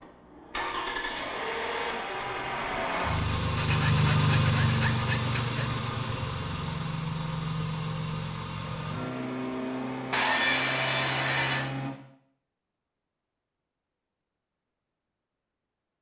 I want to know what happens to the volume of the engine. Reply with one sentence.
The loudness of the engine goes up, then down.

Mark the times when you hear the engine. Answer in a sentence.
You can hear the engine from 0.0 to 11.9 s.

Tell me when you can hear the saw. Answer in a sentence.
You can hear the saw from 3.5 to 5.8 s and from 10.1 to 11.7 s.